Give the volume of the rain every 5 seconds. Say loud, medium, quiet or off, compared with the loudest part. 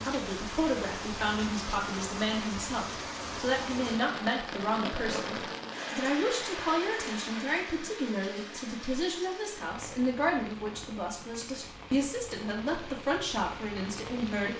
loud, loud, medium.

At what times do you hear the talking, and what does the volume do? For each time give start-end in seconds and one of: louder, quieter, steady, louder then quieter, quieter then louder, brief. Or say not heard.
0.0-14.5 steady.